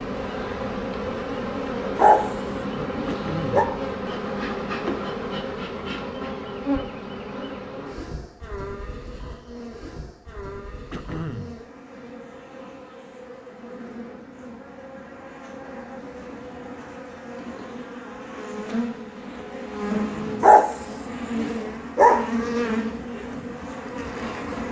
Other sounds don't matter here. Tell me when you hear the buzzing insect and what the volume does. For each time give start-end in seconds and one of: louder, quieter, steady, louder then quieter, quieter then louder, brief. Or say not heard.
0.0-24.6 quieter then louder.